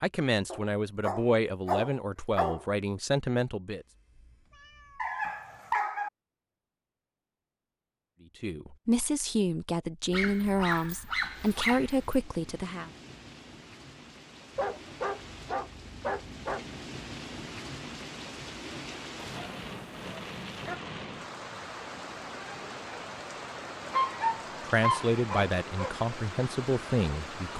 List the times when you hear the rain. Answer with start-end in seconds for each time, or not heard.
11.2-27.5.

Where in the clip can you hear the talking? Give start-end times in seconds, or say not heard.
0.0-3.9, 8.4-12.9, 24.6-27.5.